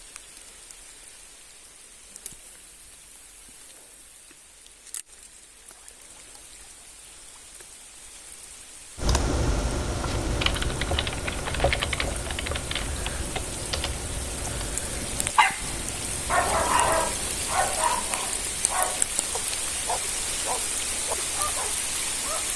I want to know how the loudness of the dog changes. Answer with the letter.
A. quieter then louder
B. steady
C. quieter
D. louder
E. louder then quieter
C.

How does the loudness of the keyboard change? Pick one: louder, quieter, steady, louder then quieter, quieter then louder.
quieter.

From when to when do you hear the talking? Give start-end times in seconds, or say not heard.
not heard.